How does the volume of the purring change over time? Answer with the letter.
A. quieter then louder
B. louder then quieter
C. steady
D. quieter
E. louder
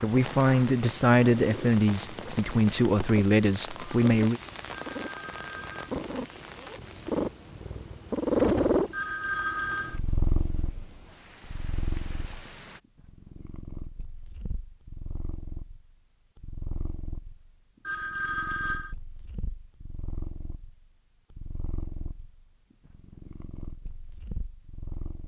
B.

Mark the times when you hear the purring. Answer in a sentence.
You can hear the purring from 0.0 to 25.2 s.